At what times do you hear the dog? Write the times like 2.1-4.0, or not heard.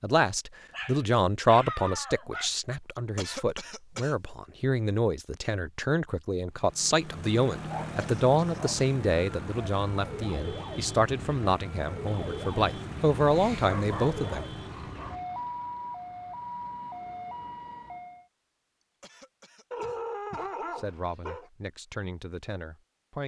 0.7-2.5, 7.7-8.8, 13.3-15.2, 19.7-21.5.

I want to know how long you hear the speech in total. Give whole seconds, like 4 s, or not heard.
17 s.